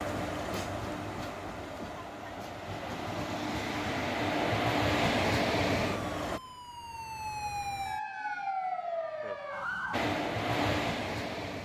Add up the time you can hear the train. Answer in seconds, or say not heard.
8 s.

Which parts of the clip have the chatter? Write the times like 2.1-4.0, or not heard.
not heard.